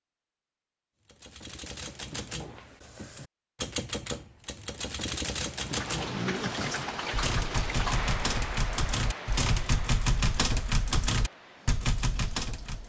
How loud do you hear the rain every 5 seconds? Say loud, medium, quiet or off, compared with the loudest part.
off, loud, quiet.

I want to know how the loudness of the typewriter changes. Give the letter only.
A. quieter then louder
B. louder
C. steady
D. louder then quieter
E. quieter
B.